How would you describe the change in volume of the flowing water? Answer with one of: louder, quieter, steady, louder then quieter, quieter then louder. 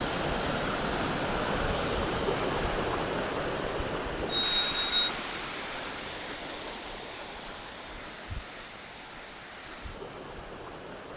quieter.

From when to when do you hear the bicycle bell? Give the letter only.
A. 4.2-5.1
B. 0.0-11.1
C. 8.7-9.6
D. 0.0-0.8
A.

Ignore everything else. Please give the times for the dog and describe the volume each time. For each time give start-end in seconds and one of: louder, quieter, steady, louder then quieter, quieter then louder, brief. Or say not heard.
not heard.